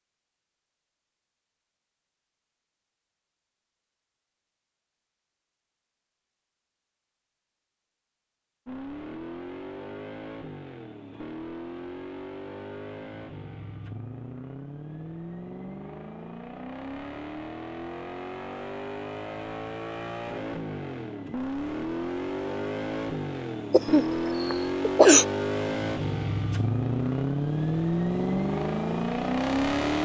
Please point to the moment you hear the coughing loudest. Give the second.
25 s.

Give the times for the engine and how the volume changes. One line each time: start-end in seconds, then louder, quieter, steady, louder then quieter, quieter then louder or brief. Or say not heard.
8.7-30.0 louder.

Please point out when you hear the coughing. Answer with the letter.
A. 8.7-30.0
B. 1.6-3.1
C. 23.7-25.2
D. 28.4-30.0
C.